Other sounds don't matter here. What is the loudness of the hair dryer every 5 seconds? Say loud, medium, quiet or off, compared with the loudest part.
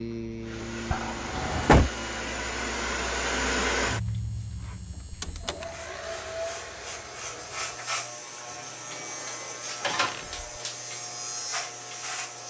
loud, medium, quiet.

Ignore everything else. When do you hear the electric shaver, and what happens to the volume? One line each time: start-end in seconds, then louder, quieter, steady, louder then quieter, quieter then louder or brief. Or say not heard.
0.0-12.4 quieter then louder.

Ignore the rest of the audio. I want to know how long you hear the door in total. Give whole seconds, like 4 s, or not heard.
2 s.